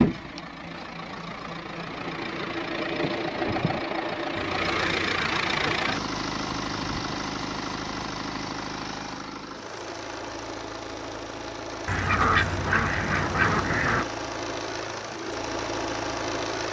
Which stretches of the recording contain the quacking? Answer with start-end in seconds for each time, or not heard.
4.3-6.1, 11.8-14.1.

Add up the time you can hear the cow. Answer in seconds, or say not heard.
not heard.